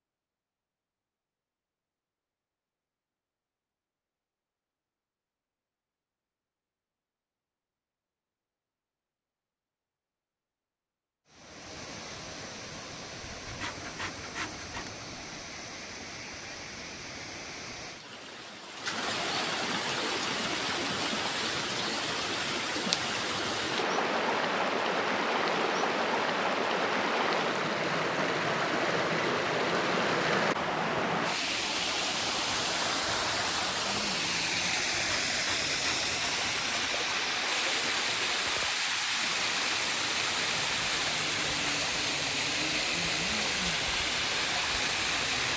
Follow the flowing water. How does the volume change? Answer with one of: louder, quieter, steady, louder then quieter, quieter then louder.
louder.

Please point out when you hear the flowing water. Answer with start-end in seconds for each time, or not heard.
11.2-45.5.